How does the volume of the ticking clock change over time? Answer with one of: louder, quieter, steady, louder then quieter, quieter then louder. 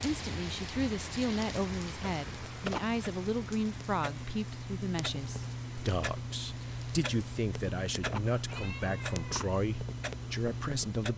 louder.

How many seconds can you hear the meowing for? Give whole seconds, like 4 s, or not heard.
2 s.